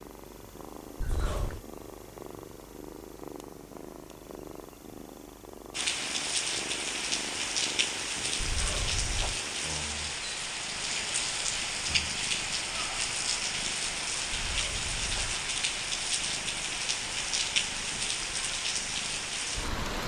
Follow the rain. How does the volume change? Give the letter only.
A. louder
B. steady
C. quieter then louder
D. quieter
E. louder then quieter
B.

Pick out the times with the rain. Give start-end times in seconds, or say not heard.
5.7-20.0.